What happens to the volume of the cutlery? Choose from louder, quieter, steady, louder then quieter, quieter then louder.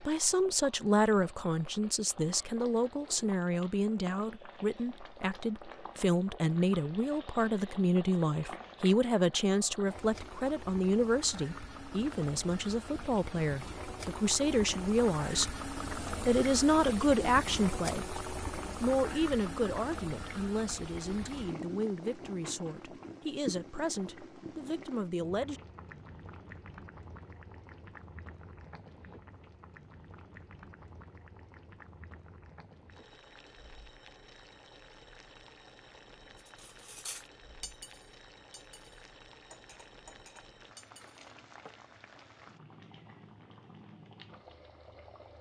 quieter.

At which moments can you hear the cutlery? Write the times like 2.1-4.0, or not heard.
36.4-41.8.